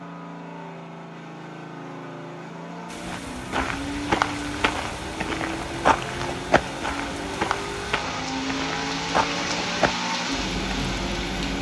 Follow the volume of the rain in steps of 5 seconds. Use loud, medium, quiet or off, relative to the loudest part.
medium, loud, loud.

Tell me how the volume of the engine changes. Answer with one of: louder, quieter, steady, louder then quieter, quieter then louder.
louder.